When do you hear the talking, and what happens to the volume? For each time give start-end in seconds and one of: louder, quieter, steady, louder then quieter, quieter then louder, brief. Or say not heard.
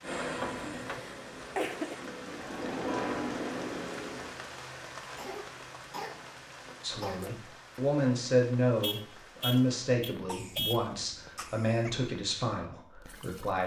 6.8-13.6 quieter.